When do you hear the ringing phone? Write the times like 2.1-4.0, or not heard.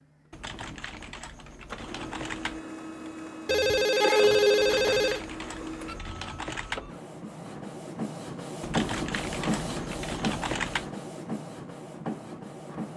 3.5-5.2.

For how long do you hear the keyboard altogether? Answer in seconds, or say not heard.
7 s.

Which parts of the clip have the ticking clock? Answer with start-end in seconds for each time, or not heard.
not heard.